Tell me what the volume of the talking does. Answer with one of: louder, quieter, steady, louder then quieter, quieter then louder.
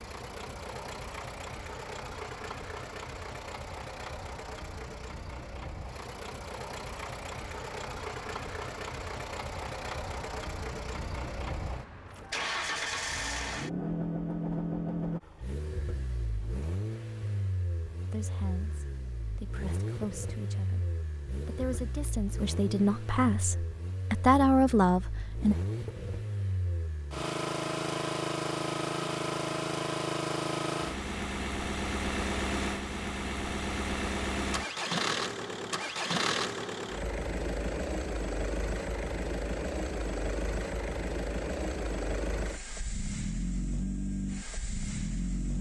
louder.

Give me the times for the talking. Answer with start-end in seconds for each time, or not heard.
18.1-25.6.